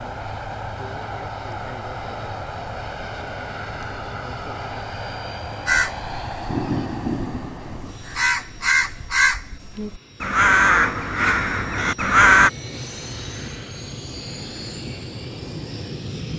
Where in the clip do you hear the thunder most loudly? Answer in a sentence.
The volume of the thunder peaks at 7 seconds.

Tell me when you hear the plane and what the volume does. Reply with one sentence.
You can hear the plane from 0.0 to 16.3 s, getting quieter then louder.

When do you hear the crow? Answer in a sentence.
The crow can be heard from 5.7 to 12.5 s.